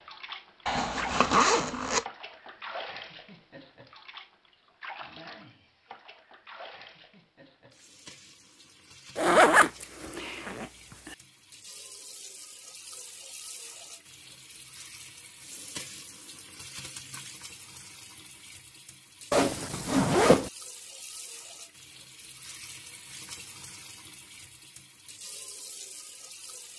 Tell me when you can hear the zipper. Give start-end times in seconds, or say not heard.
0.7-2.0, 9.2-11.2, 19.3-20.5.